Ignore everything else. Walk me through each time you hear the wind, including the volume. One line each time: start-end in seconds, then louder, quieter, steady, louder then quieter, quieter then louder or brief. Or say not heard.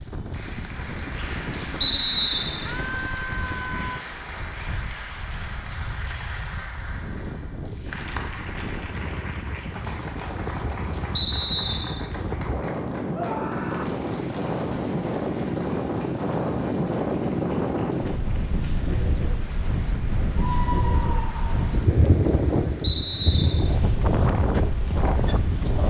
0.0-25.8 louder.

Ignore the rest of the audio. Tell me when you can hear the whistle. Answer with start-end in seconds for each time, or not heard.
1.8-2.6, 11.1-12.0, 22.8-23.7.